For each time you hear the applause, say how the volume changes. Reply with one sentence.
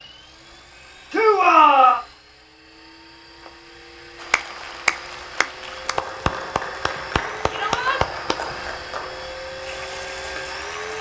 You can hear the applause from 4.2 to 10.9 s, getting quieter.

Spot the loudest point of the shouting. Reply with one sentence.
The volume of the shouting peaks at 2 seconds.